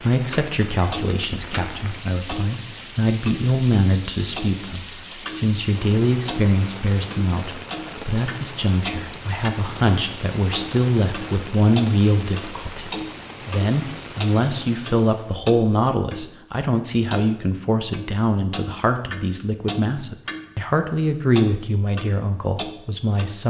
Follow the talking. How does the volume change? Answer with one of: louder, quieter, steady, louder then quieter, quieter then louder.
steady.